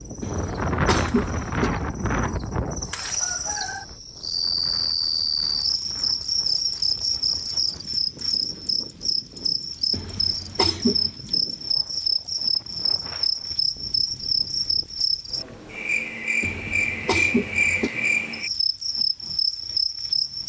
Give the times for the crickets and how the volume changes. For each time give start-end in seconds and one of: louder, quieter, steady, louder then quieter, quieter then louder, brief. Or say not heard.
0.0-20.4 louder.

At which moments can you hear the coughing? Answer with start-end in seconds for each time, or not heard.
0.2-1.7, 9.9-11.2, 16.4-17.9.